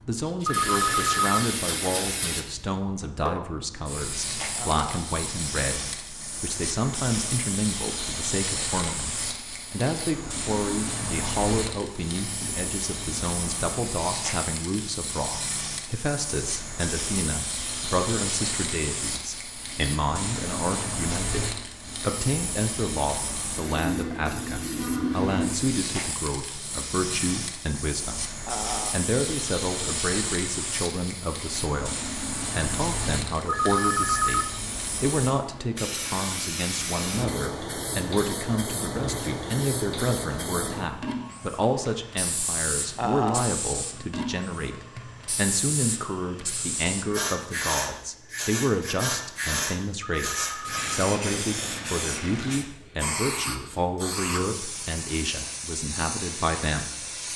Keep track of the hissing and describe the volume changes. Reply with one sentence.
The volume of the hissing stays about the same.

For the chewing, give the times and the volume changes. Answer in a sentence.
You can't hear the chewing here.